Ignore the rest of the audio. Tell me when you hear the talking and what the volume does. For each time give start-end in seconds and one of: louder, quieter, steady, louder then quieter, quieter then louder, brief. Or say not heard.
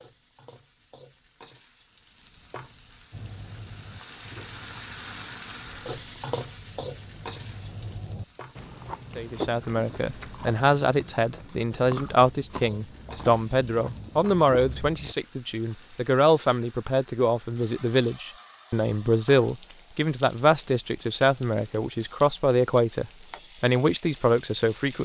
9.2-24.9 steady.